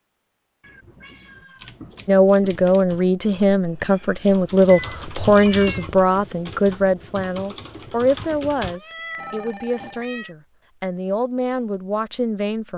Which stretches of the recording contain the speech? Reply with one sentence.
The speech can be heard from 2.0 to 12.7 s.